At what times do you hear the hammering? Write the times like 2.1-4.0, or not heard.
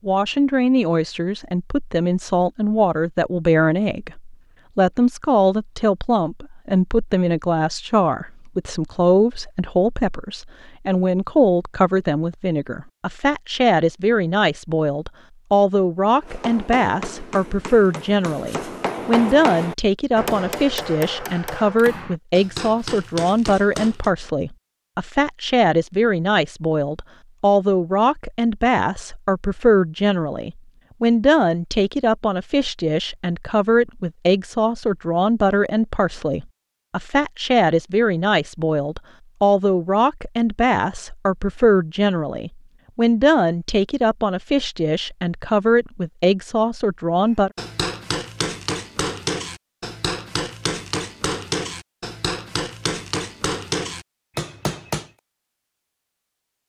16.2-24.1, 47.5-55.1.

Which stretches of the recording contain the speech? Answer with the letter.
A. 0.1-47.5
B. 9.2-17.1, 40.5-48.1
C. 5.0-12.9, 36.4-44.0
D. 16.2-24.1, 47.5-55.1
A.